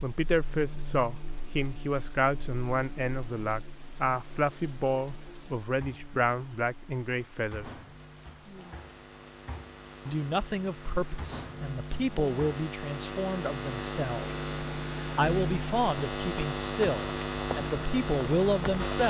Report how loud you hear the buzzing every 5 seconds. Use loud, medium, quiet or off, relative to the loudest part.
quiet, quiet, medium, loud.